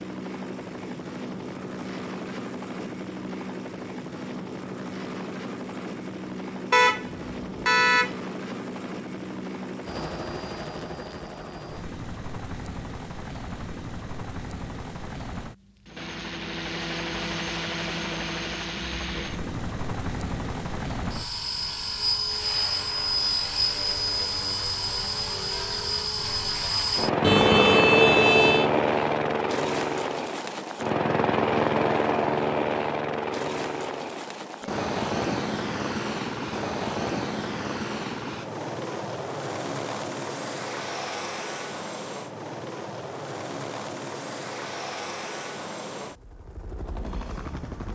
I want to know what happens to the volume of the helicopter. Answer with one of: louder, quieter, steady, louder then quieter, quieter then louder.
louder then quieter.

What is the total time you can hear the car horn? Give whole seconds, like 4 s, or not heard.
3 s.